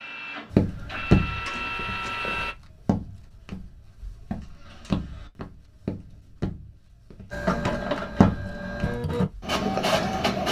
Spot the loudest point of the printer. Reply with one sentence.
The loudest moment of the printer is at 10 seconds.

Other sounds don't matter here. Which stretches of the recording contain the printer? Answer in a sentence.
You can hear the printer from 0.0 to 2.5 s and from 7.3 to 10.4 s.